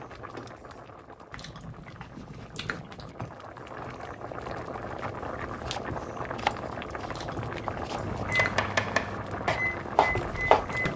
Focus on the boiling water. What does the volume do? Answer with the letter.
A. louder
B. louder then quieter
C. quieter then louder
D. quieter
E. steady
A.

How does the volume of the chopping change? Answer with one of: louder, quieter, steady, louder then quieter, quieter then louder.
quieter then louder.